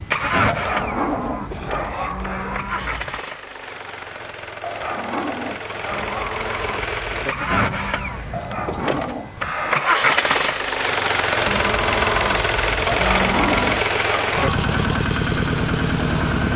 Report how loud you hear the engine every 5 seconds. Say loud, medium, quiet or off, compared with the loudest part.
medium, medium, loud, loud.